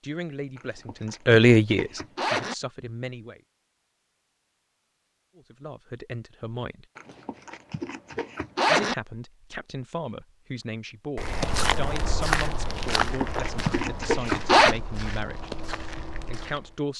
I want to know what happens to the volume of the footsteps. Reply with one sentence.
The volume of the footsteps goes down.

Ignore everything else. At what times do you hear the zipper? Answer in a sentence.
The zipper can be heard from 0.6 to 2.5 s, from 7.0 to 8.9 s and from 12.8 to 14.8 s.